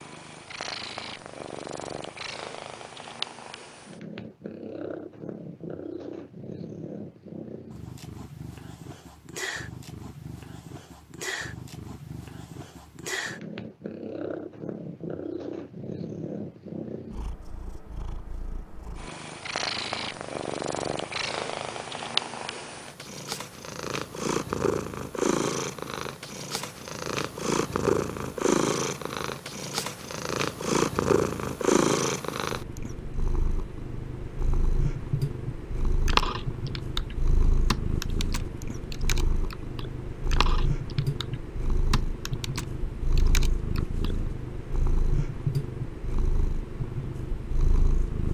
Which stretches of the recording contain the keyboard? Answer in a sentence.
The keyboard can be heard from 36.0 to 44.1 s.